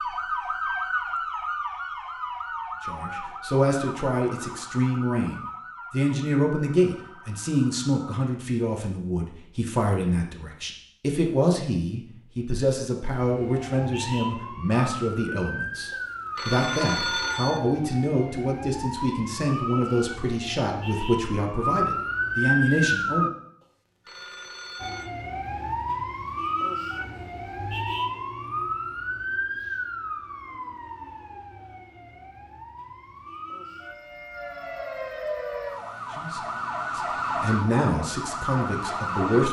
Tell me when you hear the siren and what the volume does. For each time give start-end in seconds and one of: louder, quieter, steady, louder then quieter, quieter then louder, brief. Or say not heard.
0.0-8.2 quieter
13.2-23.3 louder
24.8-39.4 quieter then louder.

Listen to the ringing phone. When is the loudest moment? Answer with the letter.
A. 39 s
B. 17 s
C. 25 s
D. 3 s
B.